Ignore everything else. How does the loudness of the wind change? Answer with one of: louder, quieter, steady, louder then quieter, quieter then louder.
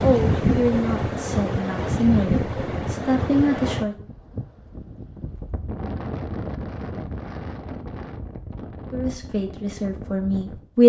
quieter.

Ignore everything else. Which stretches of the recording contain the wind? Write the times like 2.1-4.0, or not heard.
0.0-10.8.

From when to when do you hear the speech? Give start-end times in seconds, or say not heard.
0.0-4.0, 8.9-10.8.